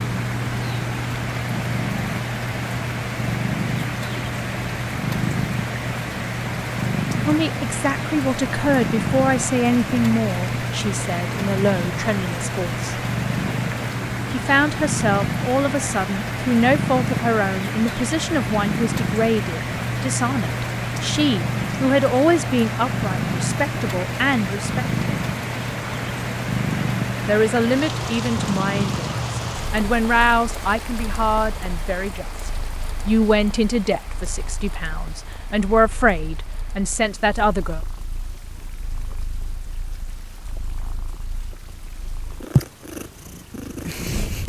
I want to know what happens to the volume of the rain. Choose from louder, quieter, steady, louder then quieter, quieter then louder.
quieter.